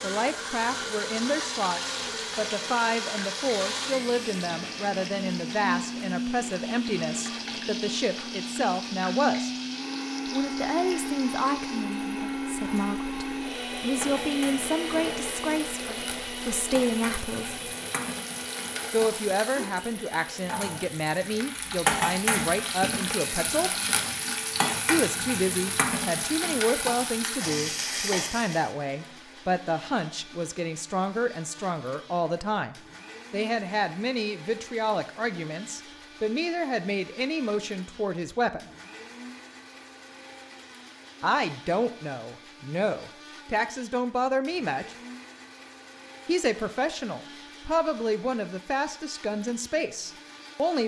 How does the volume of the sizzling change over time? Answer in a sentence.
The loudness of the sizzling goes up.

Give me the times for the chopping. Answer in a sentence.
You can't hear the chopping here.